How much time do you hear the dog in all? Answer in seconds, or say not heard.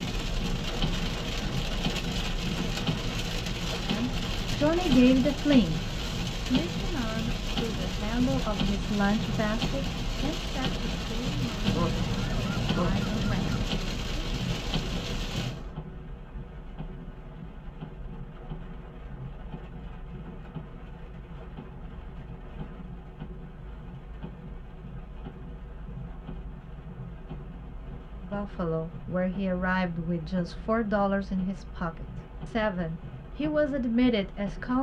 not heard.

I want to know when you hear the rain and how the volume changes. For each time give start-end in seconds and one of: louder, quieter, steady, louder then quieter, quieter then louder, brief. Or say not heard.
0.0-34.7 quieter.